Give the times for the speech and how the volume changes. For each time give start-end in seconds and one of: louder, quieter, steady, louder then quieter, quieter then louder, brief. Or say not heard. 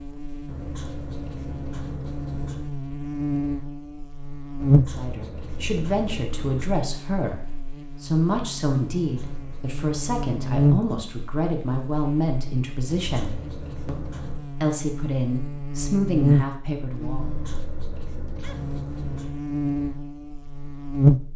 4.9-7.4 brief
8.0-17.2 steady.